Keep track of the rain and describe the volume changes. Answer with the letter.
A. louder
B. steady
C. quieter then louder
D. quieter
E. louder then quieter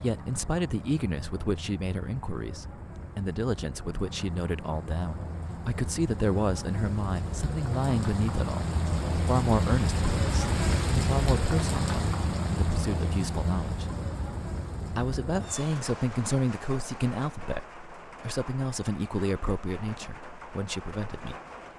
E.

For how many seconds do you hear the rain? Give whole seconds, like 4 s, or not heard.
22 s.